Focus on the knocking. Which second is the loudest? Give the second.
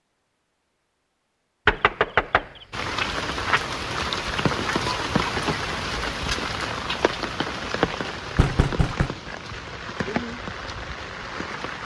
2 s.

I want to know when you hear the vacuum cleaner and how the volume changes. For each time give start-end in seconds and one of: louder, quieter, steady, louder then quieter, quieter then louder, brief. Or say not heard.
not heard.